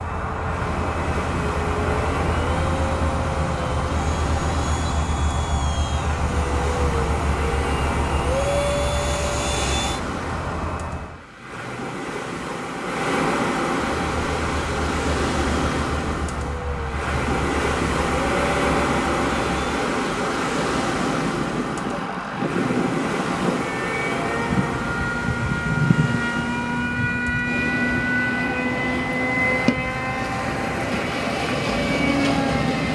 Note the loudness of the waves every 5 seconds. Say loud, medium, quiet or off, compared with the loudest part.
medium, medium, loud, loud, loud, medium, loud.